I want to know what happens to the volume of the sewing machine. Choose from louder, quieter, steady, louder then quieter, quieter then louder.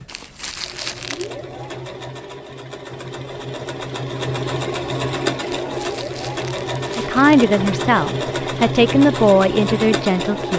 louder.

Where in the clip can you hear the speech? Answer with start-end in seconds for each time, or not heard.
7.0-10.5.